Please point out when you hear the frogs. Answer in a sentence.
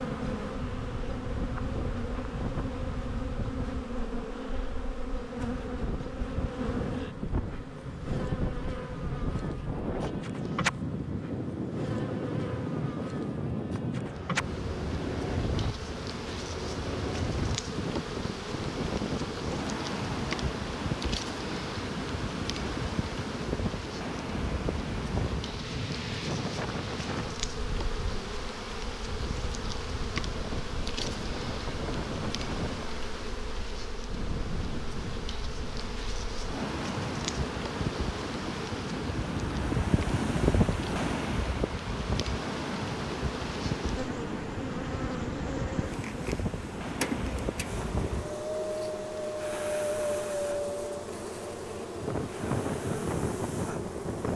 The frogs can't be heard in this clip.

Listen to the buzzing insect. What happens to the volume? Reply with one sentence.
The volume of the buzzing insect stays about the same.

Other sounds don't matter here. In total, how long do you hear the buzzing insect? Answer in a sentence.
You can hear the buzzing insect for 54 seconds altogether.